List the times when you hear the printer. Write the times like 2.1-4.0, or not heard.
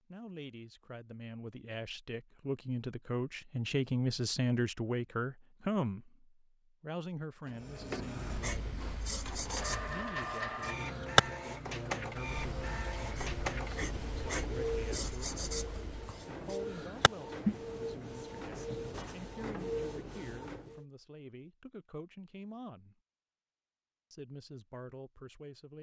7.5-20.9.